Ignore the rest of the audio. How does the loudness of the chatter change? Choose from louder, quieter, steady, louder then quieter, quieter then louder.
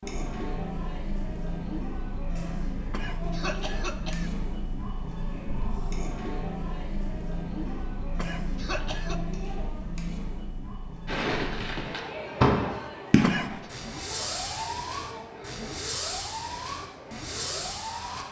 quieter.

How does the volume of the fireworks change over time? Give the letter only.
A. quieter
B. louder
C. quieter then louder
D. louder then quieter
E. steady
A.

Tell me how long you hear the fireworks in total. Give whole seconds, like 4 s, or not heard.
7 s.